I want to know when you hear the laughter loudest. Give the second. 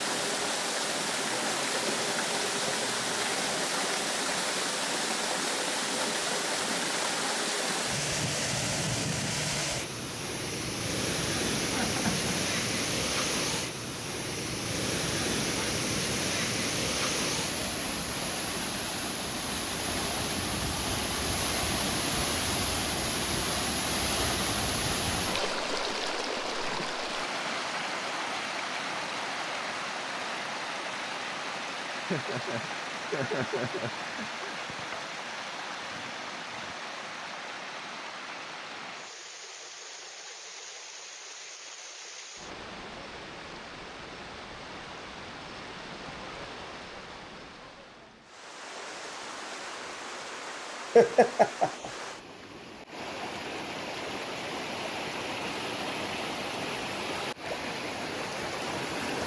51 s.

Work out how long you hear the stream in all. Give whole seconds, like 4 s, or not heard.
59 s.